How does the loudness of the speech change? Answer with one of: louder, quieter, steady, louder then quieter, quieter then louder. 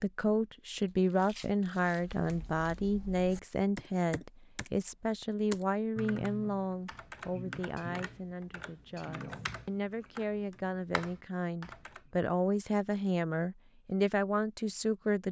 quieter then louder.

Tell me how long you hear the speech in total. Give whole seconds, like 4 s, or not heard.
15 s.